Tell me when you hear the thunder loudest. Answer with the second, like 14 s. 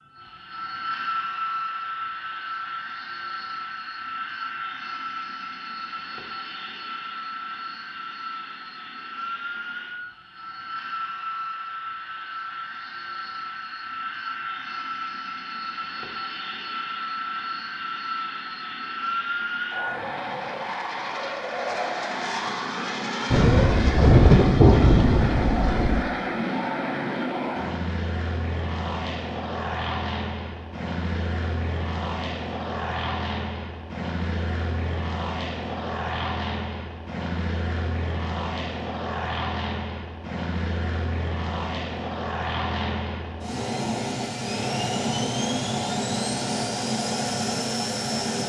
24 s.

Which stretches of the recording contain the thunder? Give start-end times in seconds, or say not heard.
23.3-26.1.